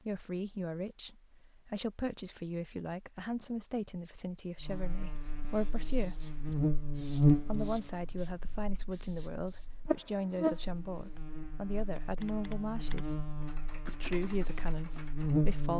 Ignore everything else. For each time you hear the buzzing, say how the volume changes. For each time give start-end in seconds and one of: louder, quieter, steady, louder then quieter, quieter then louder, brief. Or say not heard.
4.6-15.7 louder then quieter.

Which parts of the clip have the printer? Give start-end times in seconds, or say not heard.
not heard.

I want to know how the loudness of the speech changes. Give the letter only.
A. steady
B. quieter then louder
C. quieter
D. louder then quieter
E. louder
A.